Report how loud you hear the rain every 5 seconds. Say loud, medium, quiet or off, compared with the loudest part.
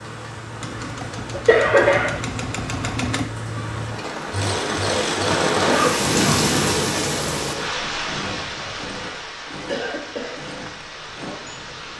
medium, loud, quiet.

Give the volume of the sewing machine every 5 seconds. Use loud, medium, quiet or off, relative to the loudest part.
loud, loud, medium.